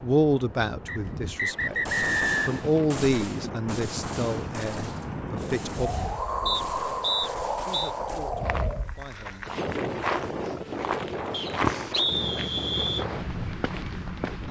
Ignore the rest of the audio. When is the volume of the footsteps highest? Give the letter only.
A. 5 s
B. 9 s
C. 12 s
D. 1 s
C.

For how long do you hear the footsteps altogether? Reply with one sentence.
The footsteps can be heard for 6 seconds in total.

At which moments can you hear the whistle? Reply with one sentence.
The whistle can be heard from 0.8 to 2.6 s, from 6.5 to 7.9 s and from 11.3 to 13.1 s.